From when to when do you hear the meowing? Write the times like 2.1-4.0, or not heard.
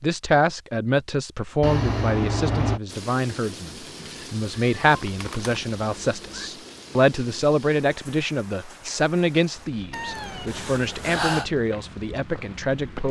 1.6-2.8, 4.8-6.5, 9.9-11.5.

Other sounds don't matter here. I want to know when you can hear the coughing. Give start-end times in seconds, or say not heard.
not heard.